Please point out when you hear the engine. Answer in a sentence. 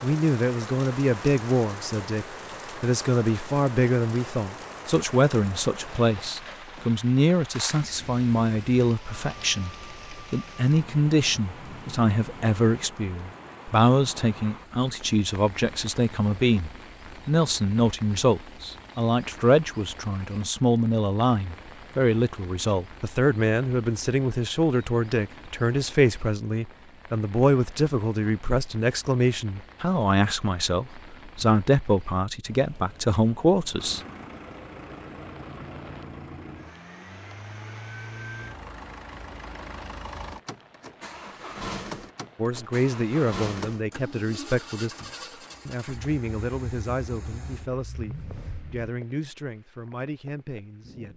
The engine can be heard from 33.8 to 48.9 s.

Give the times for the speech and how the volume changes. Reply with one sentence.
The speech can be heard from 0.0 to 34.0 s, at a steady volume; and from 42.4 to 51.1 s, getting quieter.